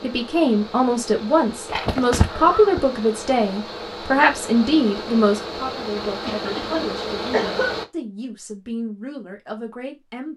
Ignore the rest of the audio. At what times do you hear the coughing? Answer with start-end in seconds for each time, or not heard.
1.7-2.8, 6.0-7.8.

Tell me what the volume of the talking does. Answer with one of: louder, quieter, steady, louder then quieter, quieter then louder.
quieter.